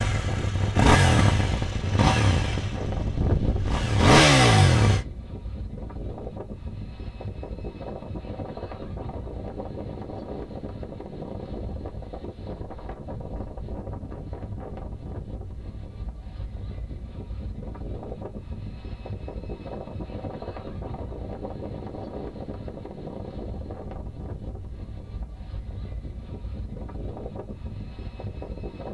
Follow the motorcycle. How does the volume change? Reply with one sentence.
The volume of the motorcycle goes down, then up.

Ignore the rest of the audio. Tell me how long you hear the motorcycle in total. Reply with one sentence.
You can hear the motorcycle for 5 seconds altogether.